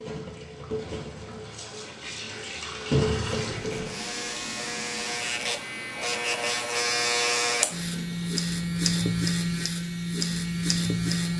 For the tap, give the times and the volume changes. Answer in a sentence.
The tap can be heard from 0.0 to 11.3 s, getting louder then quieter.